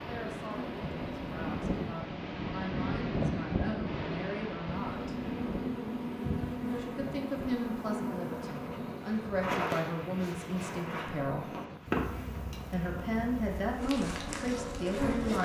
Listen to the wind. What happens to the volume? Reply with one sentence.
The loudness of the wind goes down.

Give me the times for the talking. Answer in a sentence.
The talking can be heard from 0.0 to 5.2 s, from 6.8 to 11.4 s and from 12.7 to 15.4 s.